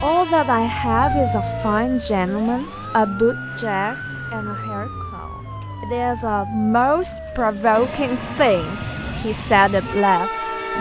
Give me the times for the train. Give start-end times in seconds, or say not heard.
0.0-1.9, 7.7-10.7.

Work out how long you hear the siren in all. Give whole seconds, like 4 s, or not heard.
11 s.